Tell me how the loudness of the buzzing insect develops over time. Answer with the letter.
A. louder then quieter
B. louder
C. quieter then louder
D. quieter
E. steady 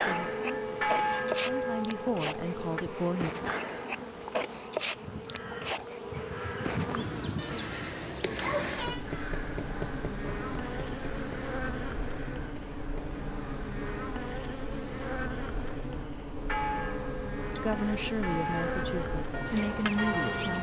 E.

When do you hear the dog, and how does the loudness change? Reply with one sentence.
You can't hear the dog here.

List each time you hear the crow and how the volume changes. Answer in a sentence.
The crow can be heard from 5.0 to 14.1 s, getting quieter.